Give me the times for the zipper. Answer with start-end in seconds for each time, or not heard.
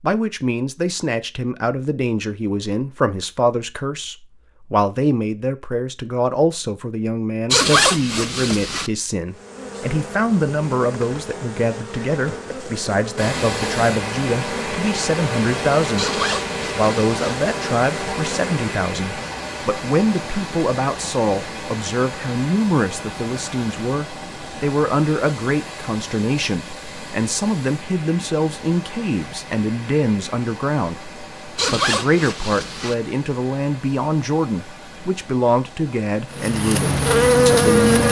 7.5-8.9, 15.9-17.1, 31.6-33.0.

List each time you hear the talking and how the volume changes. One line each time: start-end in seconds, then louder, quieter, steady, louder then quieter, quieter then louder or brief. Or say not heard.
0.0-38.0 steady.